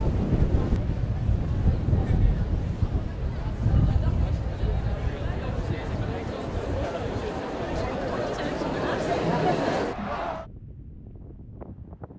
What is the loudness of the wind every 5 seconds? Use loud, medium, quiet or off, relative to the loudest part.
loud, medium, quiet.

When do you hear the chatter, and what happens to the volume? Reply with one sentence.
The chatter can be heard from 0.0 to 10.4 s, getting louder.